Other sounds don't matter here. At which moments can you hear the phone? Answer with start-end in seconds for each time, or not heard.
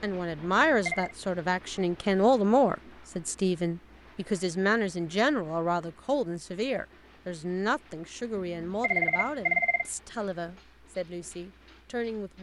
0.4-1.1, 8.3-9.9.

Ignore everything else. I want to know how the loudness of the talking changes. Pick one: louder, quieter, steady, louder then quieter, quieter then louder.
quieter.